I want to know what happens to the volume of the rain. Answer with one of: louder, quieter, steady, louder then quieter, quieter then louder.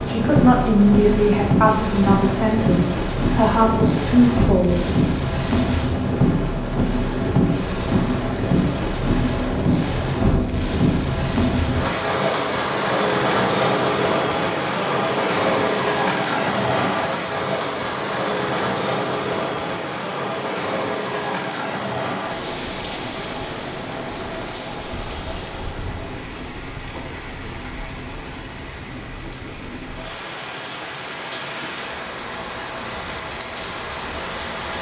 quieter.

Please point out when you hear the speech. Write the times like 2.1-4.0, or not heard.
0.1-4.8.